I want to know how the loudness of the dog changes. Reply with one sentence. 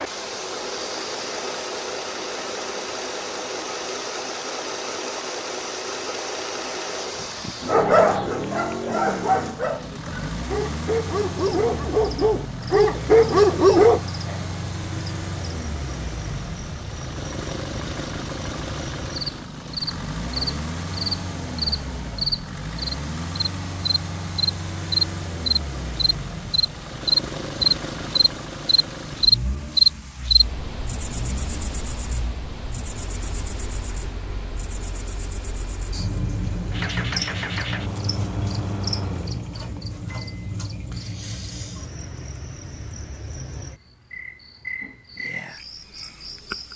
The volume of the dog goes up.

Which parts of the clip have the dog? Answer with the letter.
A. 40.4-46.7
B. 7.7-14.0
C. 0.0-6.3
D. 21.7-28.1
B.